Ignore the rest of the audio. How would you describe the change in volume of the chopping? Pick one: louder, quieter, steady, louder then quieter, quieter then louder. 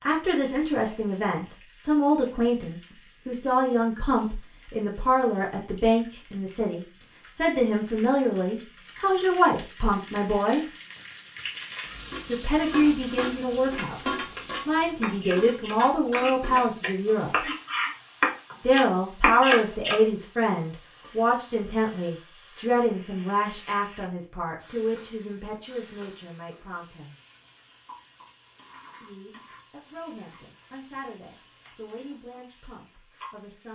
louder.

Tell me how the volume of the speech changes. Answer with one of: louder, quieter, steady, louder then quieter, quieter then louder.
quieter.